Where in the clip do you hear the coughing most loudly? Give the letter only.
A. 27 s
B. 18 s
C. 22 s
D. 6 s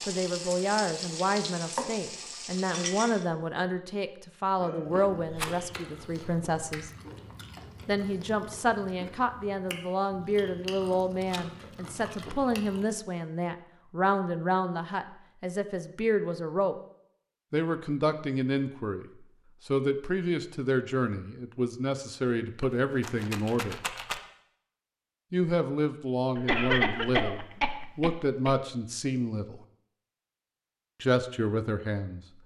A.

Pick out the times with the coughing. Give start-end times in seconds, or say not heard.
4.5-5.8, 26.4-28.6.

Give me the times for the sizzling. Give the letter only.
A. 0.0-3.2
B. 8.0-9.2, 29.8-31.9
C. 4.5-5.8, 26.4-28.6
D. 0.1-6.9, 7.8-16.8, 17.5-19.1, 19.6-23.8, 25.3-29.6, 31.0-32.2
A.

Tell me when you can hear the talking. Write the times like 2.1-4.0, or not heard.
0.1-6.9, 7.8-16.8, 17.5-19.1, 19.6-23.8, 25.3-29.6, 31.0-32.2.